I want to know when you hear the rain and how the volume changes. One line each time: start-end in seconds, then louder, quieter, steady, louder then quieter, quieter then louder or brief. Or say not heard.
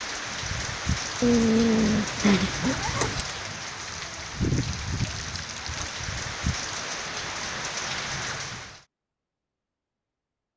0.0-8.8 steady.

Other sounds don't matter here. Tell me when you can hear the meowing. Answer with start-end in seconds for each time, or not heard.
1.2-3.2.